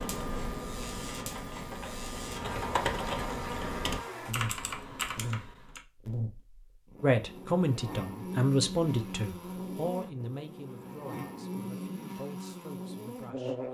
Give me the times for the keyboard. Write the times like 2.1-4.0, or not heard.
0.0-5.8.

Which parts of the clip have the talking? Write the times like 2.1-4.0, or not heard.
7.0-13.6.